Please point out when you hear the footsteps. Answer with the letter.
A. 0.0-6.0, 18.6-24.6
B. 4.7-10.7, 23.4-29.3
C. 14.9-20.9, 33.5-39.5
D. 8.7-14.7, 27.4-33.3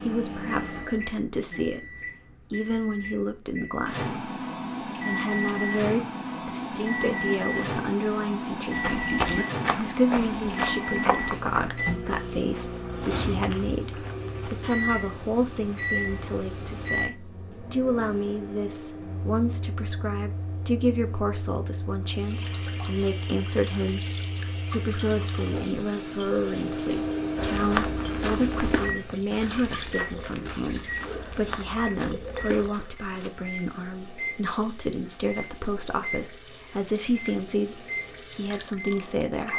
D.